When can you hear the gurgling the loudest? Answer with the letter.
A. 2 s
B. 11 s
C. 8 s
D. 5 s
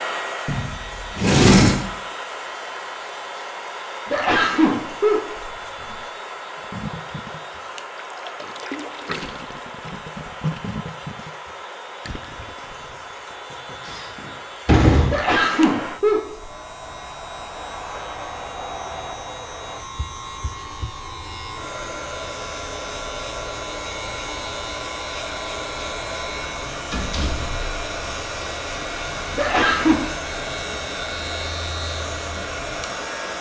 B.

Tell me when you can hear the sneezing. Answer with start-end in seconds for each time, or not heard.
4.0-6.0, 15.1-16.5, 29.4-30.0.